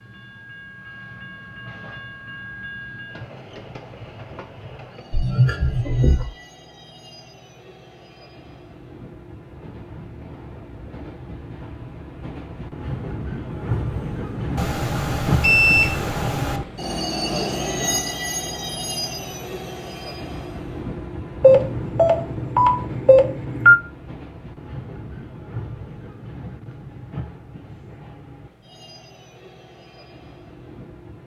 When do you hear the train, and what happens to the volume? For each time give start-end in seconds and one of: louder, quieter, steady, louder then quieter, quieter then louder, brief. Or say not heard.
0.0-31.2 louder then quieter.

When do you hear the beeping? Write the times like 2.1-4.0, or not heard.
5.1-6.2, 14.6-16.6, 21.4-23.8.